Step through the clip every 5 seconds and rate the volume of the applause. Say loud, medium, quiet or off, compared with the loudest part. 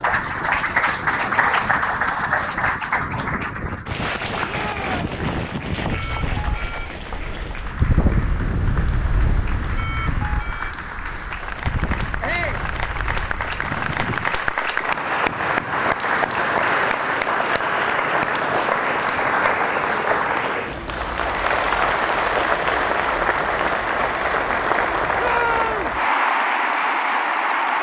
loud, quiet, medium, loud, loud, loud.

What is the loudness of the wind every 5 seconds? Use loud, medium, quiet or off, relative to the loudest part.
medium, loud, medium, off, off, off.